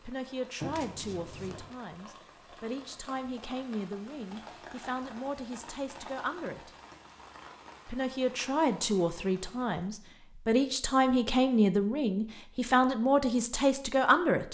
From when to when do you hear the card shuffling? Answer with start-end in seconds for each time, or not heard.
0.6-1.8.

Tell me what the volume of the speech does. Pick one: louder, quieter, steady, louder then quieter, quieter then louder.
louder.